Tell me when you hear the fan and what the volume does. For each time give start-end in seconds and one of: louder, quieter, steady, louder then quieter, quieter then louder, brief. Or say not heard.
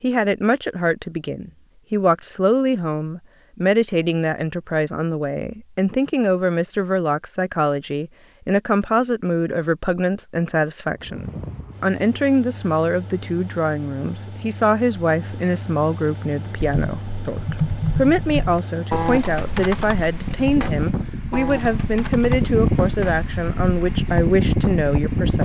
10.9-25.4 louder.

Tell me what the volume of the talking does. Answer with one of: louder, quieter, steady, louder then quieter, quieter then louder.
steady.